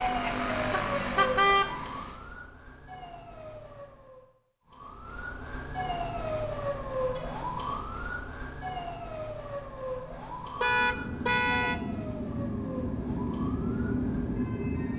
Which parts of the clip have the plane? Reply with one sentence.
The plane can be heard from 0.0 to 2.2 s and from 10.7 to 14.9 s.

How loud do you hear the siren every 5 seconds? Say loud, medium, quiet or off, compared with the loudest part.
loud, loud, medium.